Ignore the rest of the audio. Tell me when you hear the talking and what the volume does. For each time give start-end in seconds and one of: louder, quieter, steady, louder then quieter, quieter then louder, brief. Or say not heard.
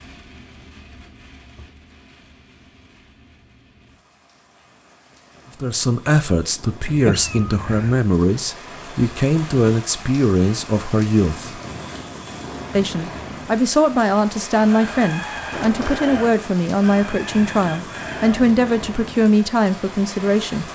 5.6-11.6 steady
12.8-20.7 steady.